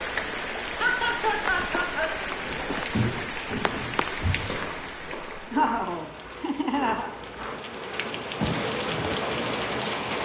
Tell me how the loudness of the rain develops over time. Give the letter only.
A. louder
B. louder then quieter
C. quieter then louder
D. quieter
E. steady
C.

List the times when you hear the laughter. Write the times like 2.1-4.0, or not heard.
0.7-2.1, 5.5-7.1.